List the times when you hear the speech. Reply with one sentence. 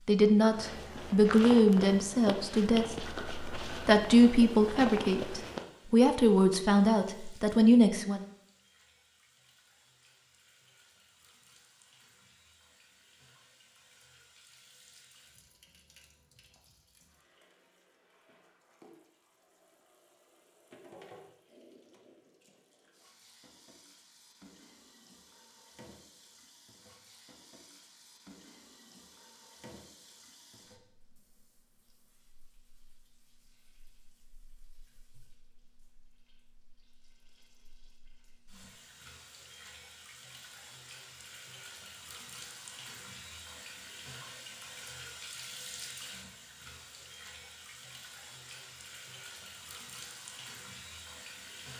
The speech can be heard from 0.1 to 8.2 s.